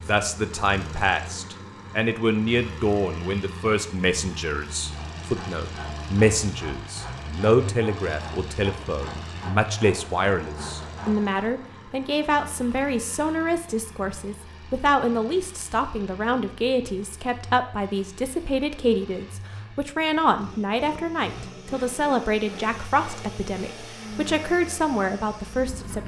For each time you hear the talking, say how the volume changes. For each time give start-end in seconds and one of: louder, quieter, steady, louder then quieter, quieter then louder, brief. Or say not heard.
0.1-26.0 steady.